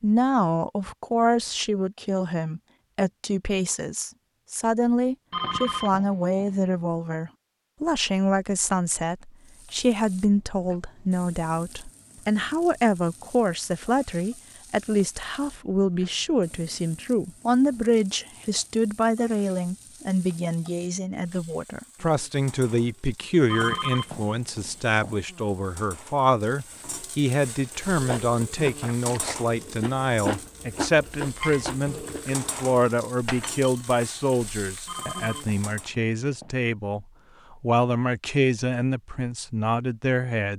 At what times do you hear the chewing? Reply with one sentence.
You can hear the chewing from 27.5 to 32.7 s.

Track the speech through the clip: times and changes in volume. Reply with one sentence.
The speech can be heard from 0.0 to 40.5 s, at a steady volume.